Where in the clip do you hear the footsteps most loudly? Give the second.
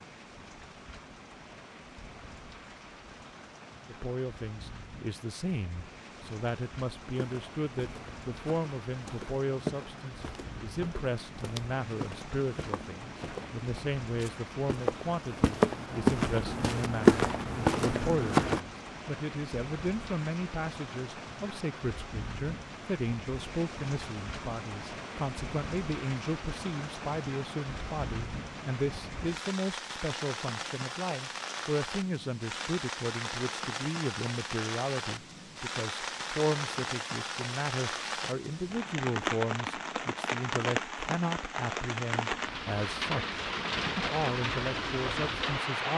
17 s.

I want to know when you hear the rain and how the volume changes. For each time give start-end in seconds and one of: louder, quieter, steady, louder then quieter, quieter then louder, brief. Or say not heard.
0.0-45.9 louder.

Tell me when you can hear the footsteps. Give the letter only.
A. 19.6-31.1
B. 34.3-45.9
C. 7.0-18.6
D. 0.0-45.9
C.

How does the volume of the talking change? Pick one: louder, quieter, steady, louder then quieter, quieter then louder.
steady.